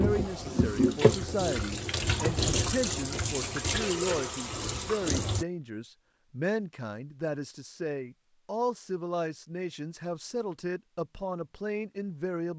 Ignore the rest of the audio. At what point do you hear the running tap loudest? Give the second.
1 s.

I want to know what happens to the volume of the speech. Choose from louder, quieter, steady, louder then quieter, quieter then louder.
steady.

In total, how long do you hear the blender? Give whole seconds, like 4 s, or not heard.
not heard.